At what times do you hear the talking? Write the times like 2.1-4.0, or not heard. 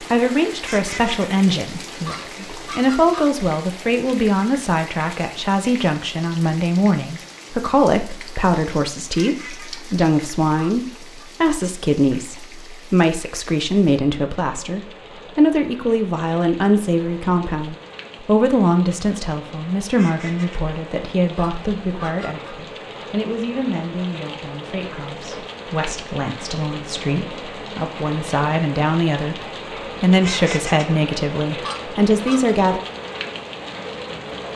0.0-29.4, 30.0-32.8.